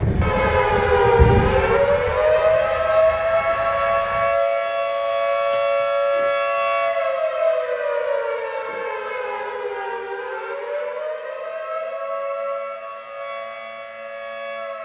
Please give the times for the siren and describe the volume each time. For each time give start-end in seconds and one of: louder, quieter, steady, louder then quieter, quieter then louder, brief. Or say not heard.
0.2-14.8 quieter.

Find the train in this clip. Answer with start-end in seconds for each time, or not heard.
0.0-4.4.